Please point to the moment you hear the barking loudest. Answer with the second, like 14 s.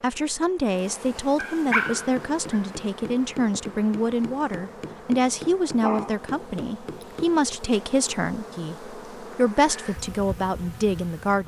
2 s.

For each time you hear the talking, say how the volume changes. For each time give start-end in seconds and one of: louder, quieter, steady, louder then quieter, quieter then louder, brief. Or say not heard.
0.0-11.4 steady.